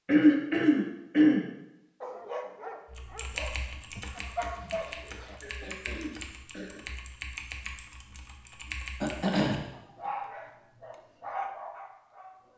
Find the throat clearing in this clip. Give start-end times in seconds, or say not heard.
0.1-1.4, 4.6-6.8, 9.0-9.6.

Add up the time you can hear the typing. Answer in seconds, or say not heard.
7 s.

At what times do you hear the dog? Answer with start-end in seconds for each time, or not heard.
2.0-5.4, 9.7-12.5.